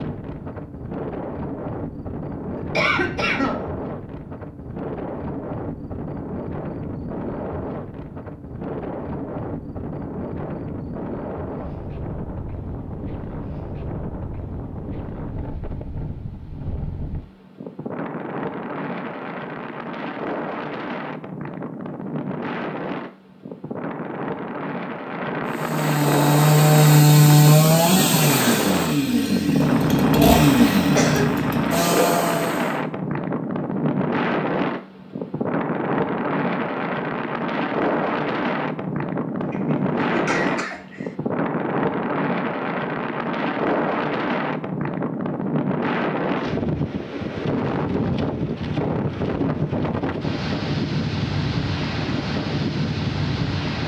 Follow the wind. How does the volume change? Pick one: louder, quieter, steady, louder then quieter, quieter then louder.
louder.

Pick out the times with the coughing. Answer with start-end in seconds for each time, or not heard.
2.5-3.6, 30.9-31.9, 39.4-41.1.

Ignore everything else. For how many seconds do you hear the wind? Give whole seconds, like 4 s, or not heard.
54 s.